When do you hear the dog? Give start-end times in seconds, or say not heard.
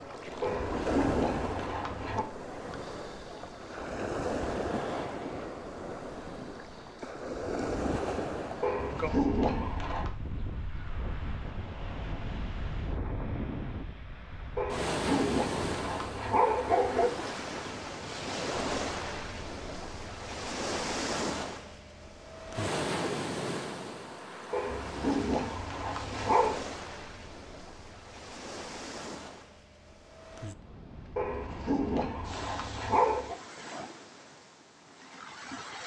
0.4-2.2, 8.6-10.1, 14.6-17.1, 24.5-26.6, 31.1-33.4.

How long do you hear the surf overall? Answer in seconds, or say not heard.
36 s.